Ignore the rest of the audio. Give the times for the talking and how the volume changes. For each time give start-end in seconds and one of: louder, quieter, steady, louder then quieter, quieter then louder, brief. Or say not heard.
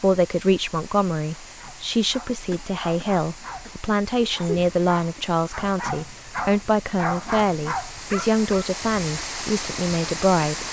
0.0-10.6 steady.